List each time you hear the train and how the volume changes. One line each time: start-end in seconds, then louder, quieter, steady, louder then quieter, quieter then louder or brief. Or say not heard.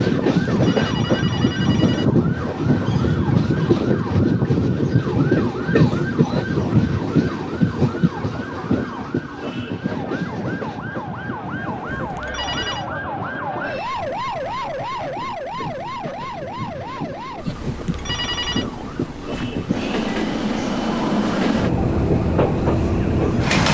0.0-23.6 quieter then louder.